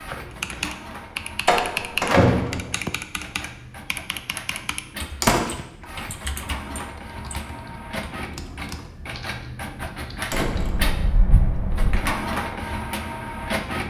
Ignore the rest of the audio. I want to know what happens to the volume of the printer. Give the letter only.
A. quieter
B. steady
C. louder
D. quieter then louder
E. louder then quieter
C.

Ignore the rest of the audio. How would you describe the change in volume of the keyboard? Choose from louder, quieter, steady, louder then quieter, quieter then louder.
quieter.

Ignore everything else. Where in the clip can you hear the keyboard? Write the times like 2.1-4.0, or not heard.
0.3-10.7.